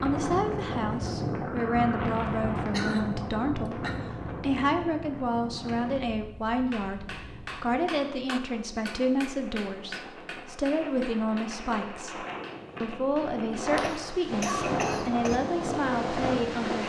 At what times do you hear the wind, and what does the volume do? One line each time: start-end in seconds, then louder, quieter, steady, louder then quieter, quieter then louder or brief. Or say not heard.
0.0-16.8 quieter then louder.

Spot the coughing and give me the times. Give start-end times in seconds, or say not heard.
2.2-4.2, 13.8-15.4.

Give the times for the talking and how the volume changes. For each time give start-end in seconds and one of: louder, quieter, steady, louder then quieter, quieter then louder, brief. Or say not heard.
0.0-16.8 steady.